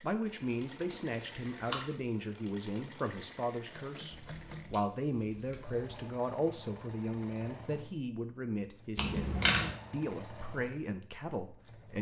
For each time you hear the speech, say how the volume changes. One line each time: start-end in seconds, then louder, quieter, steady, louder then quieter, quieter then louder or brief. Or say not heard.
0.0-11.9 steady.